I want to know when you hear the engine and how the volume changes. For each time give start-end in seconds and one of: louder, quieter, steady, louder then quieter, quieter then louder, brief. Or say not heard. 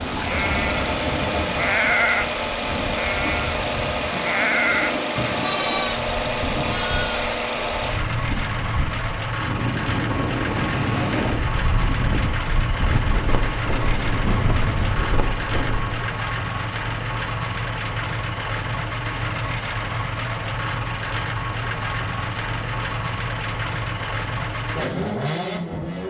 0.0-26.0 steady.